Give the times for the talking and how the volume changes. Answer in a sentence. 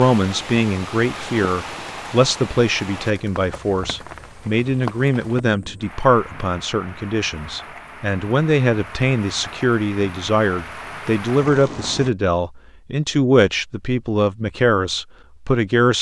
The talking can be heard from 0.0 to 15.9 s, at a steady volume.